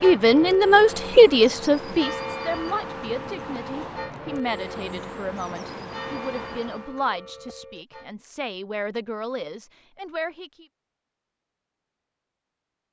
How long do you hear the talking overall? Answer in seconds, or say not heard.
11 s.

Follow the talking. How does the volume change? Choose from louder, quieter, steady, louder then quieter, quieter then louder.
quieter.